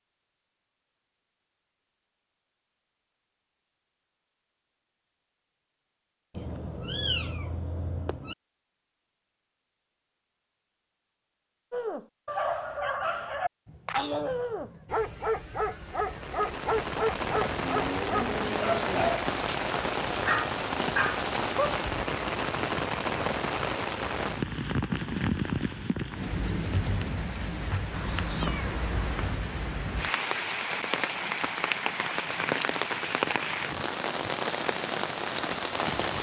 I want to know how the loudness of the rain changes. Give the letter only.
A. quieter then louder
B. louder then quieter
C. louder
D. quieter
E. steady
E.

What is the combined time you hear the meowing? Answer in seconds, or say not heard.
6 s.